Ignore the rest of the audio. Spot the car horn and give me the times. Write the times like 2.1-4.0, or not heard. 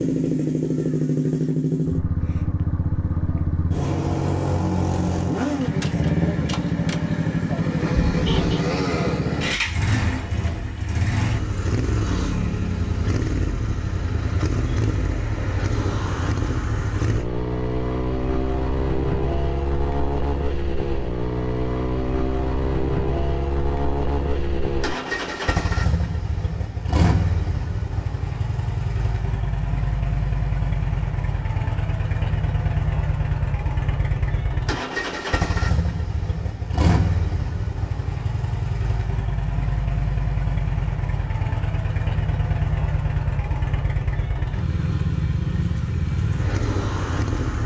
7.9-8.7.